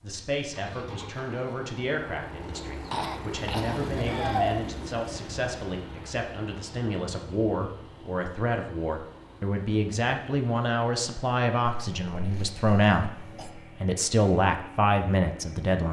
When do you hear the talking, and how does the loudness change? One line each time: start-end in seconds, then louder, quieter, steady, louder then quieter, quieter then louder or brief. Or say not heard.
0.0-15.8 louder.